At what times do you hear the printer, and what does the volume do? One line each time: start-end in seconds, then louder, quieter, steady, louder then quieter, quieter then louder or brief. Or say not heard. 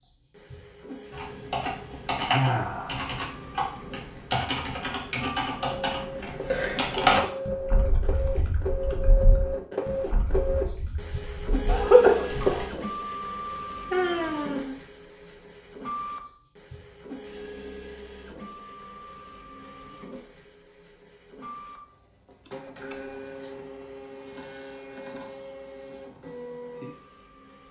0.0-27.6 louder then quieter.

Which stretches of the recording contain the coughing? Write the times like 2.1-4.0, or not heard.
11.7-12.6.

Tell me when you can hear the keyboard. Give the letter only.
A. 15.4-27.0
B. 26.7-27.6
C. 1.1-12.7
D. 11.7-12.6
C.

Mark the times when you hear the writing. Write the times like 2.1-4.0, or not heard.
not heard.